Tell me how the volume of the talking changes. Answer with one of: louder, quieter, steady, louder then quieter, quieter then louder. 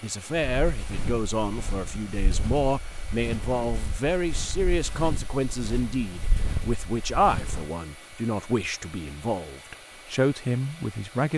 steady.